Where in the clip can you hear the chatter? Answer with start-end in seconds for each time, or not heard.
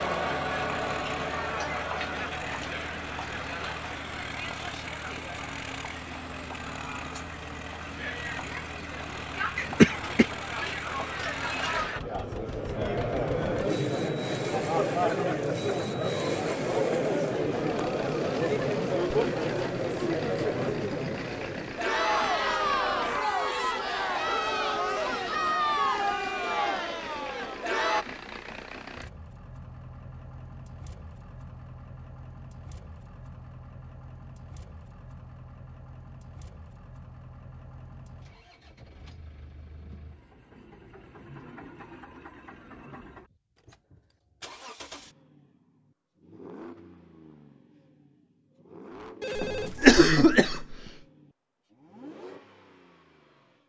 0.0-28.1.